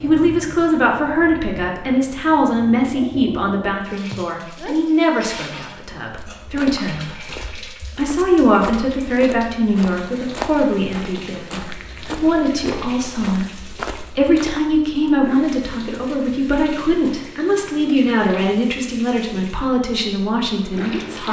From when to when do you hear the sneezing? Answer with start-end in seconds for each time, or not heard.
4.1-4.8.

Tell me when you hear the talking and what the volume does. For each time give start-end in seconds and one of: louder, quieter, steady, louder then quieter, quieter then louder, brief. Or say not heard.
0.0-21.2 steady.